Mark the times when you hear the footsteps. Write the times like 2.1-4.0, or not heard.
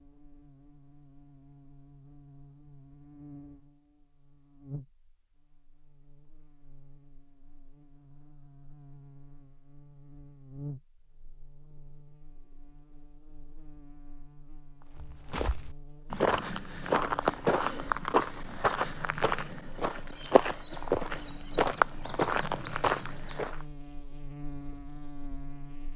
14.9-23.6.